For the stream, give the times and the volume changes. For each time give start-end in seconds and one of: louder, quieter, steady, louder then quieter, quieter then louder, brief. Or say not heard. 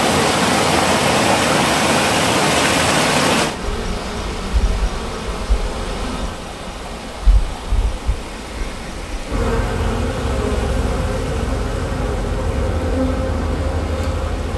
0.0-14.5 quieter.